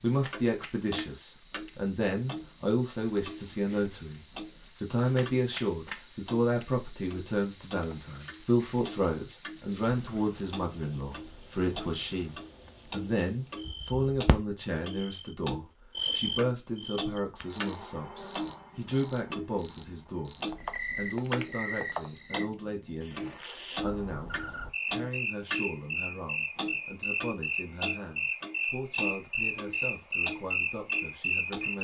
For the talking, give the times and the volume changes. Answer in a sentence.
You can hear the talking from 0.0 to 31.8 s, getting quieter.